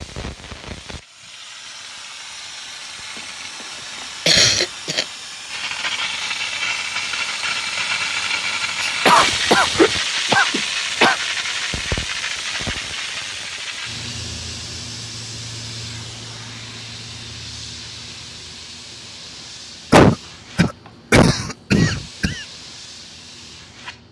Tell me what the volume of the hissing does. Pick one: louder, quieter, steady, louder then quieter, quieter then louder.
louder then quieter.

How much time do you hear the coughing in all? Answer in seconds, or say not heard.
6 s.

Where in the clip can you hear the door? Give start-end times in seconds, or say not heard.
not heard.